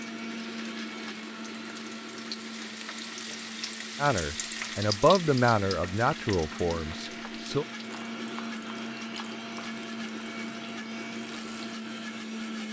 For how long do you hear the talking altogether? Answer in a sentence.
You can hear the talking for 4 seconds altogether.